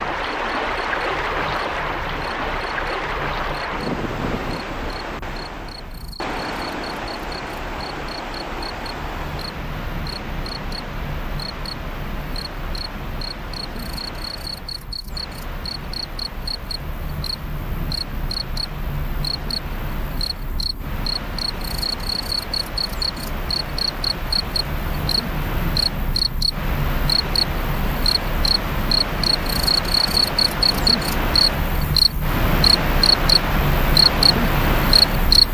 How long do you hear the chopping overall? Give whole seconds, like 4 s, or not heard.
not heard.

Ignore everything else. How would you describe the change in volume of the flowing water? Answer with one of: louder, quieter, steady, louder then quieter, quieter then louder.
quieter then louder.